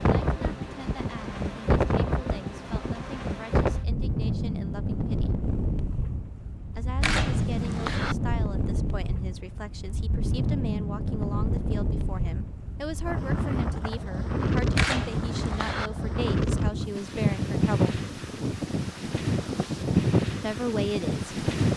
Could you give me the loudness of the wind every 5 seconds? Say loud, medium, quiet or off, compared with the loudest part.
loud, medium, loud, loud, loud.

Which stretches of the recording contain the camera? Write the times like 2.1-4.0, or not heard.
7.0-8.2, 14.8-15.9.